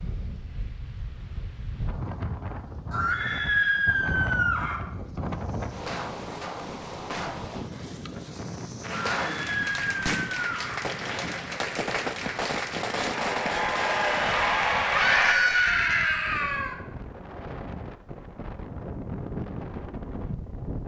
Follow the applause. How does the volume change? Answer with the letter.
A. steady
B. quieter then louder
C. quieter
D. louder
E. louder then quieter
D.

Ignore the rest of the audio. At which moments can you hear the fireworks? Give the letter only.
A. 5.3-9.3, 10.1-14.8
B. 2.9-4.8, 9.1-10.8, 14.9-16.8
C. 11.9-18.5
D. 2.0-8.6
A.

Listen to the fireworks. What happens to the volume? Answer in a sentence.
The volume of the fireworks goes down, then up.